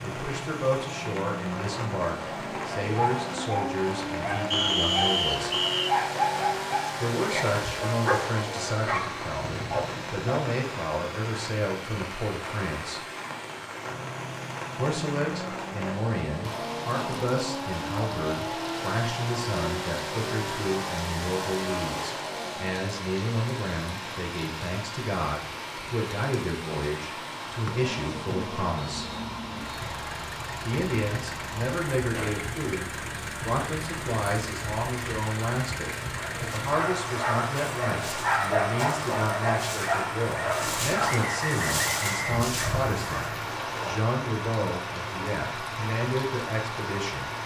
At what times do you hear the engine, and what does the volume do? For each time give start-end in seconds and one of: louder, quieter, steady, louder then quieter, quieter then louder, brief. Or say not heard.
0.0-47.4 steady.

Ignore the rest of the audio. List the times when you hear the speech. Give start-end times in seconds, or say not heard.
0.0-5.5, 7.0-13.0, 14.8-29.1, 30.6-47.3.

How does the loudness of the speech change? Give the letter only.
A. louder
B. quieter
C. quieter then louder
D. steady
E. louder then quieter
D.